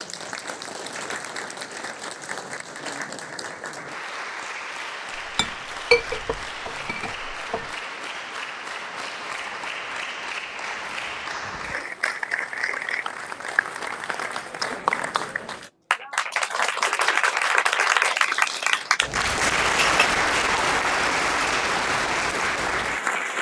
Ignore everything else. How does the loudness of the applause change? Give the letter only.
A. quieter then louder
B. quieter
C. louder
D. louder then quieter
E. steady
C.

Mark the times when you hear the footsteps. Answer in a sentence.
The footsteps can't be heard in this clip.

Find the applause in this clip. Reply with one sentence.
You can hear the applause from 0.0 to 23.3 s.